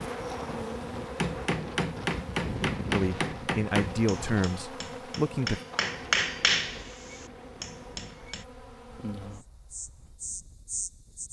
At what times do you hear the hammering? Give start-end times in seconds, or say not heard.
1.1-8.4.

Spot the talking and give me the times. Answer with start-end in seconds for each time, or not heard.
2.9-5.6.